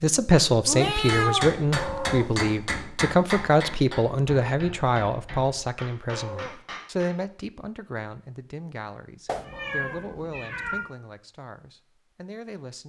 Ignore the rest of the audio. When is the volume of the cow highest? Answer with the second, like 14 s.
2 s.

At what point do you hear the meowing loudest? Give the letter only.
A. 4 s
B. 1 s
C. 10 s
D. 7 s
B.